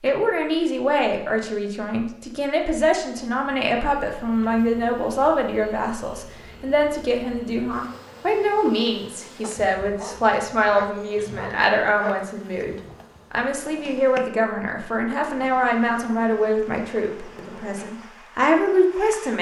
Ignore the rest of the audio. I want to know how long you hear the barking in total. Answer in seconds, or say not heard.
3 s.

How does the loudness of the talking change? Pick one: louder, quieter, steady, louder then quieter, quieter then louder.
steady.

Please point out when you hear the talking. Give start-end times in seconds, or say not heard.
0.0-19.3.